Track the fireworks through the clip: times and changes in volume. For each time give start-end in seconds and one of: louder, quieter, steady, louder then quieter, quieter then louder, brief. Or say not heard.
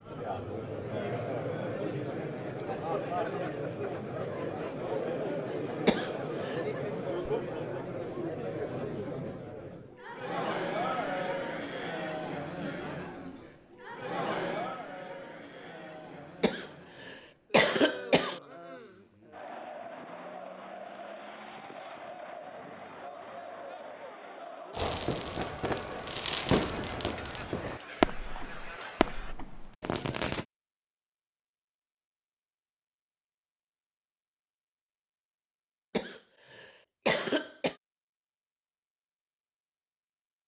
24.8-30.4 louder then quieter.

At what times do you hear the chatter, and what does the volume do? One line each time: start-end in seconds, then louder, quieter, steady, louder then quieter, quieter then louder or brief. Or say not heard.
0.0-29.4 quieter.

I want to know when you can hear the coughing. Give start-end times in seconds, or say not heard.
5.8-6.6, 16.4-18.4, 35.9-37.8.